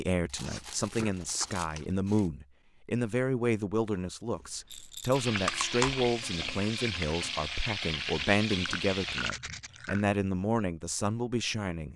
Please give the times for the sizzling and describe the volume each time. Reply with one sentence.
You can hear the sizzling from 5.1 to 9.3 s, at a steady volume.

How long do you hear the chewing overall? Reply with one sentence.
The chewing can be heard for 4 seconds in total.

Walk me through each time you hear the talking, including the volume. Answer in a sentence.
The talking can be heard from 0.0 to 11.9 s, at a steady volume.